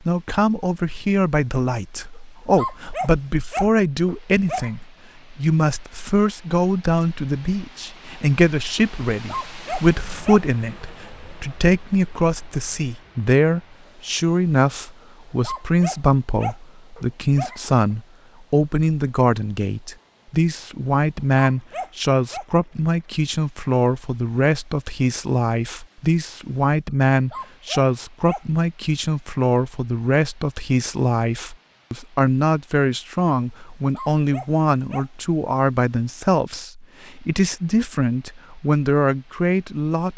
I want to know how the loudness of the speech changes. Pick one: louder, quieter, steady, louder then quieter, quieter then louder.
steady.